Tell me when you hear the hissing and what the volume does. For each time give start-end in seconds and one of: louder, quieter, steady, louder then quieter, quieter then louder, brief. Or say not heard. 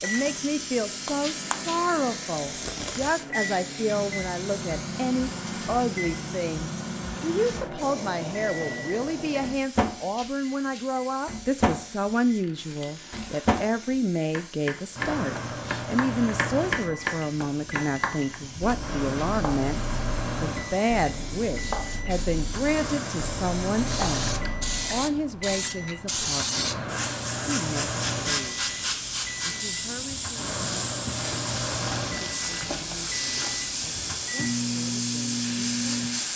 0.0-36.3 quieter then louder.